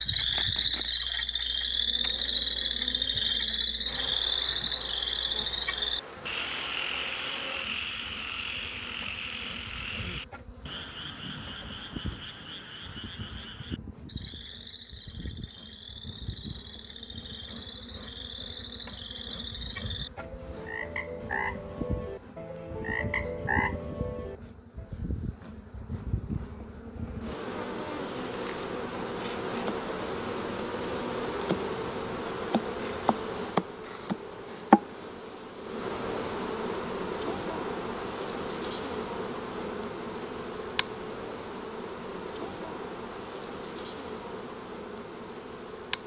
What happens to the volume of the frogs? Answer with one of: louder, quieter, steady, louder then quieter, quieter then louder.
quieter then louder.